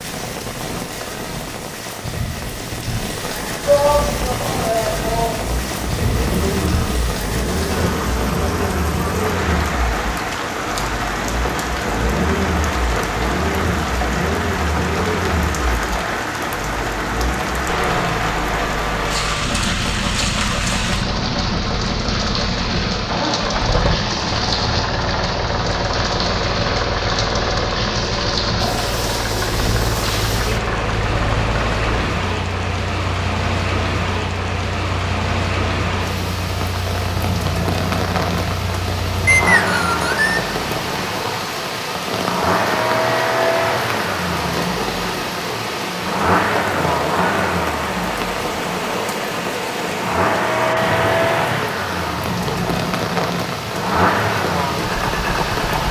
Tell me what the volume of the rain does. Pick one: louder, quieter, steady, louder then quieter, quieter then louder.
steady.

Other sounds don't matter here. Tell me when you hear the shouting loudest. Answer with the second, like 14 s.
4 s.